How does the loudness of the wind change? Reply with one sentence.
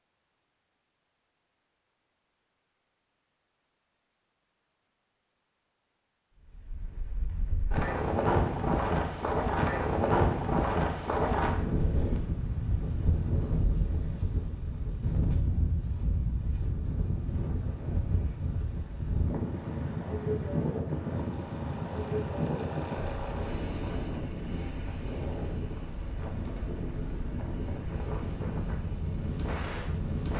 The loudness of the wind goes down.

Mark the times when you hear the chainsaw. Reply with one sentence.
You can hear the chainsaw from 21.1 to 30.3 s.